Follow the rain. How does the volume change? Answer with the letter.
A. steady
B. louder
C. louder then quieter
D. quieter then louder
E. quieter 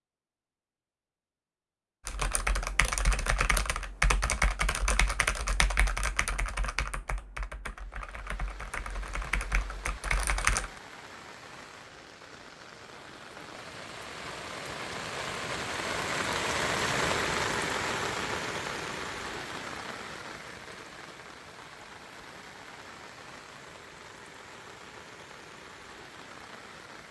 C.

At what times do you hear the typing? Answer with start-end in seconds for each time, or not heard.
2.0-10.7.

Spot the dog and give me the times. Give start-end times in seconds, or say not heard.
not heard.